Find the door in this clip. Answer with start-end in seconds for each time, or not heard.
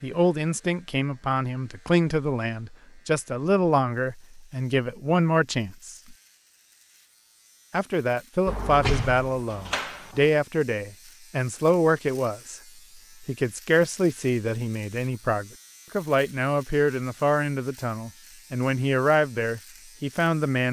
8.4-10.2.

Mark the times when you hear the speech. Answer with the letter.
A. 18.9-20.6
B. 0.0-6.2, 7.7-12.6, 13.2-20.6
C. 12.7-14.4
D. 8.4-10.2
B.